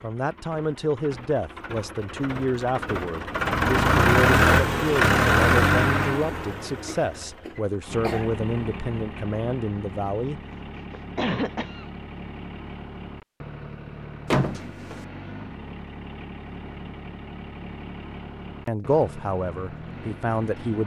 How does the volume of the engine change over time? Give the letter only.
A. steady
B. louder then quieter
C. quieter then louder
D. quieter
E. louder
D.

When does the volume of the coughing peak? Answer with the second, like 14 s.
11 s.